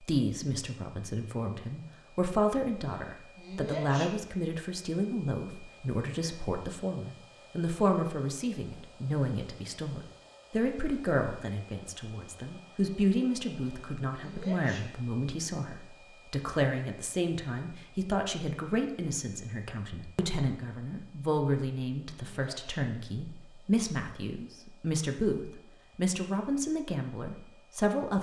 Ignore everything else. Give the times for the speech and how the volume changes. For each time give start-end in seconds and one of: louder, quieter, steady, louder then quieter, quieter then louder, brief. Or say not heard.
0.0-28.1 steady.